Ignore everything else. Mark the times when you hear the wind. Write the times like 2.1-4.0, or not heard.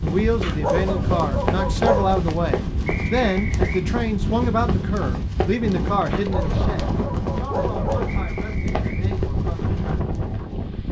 0.0-10.8.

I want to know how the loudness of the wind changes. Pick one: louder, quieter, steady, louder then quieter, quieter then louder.
steady.